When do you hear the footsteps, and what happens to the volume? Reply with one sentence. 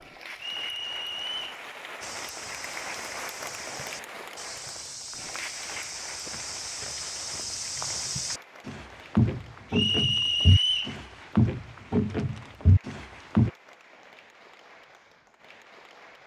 The footsteps can be heard from 2.0 to 13.5 s, getting louder.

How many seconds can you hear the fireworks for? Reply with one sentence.
You can't hear the fireworks here.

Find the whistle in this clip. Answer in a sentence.
The whistle can be heard from 0.3 to 1.6 s and from 9.7 to 10.9 s.